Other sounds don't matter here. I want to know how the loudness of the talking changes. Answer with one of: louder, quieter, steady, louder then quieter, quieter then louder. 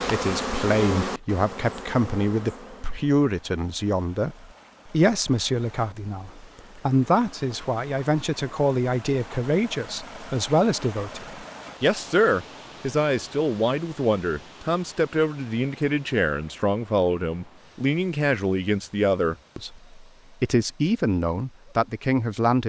steady.